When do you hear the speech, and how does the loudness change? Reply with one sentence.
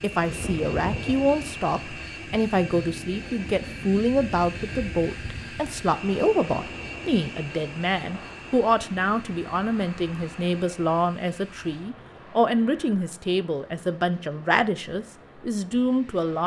The speech can be heard from 0.0 to 16.4 s, at a steady volume.